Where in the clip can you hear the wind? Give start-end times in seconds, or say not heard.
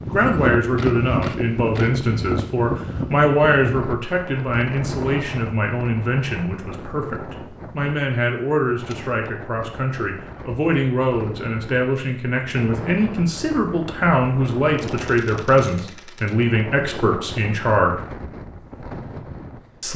0.0-19.9.